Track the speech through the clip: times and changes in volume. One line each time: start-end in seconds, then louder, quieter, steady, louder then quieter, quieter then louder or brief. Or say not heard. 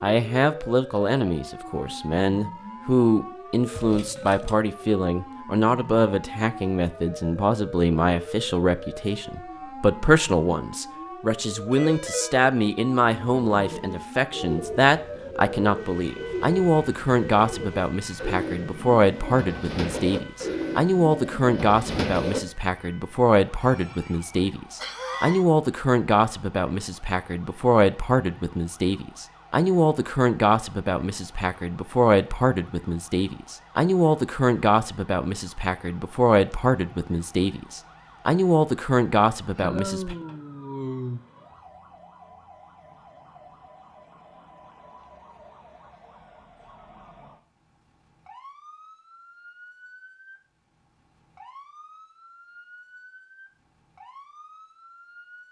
0.0-40.1 steady.